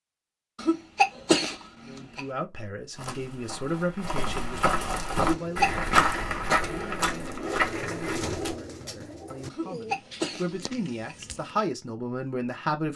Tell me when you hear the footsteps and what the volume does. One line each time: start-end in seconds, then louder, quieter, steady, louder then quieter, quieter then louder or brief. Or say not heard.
2.9-8.6 louder then quieter.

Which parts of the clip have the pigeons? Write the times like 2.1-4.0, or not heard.
5.2-11.7.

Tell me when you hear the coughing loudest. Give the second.
1 s.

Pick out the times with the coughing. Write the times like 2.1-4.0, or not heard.
0.6-2.2, 5.2-5.8, 9.5-11.2.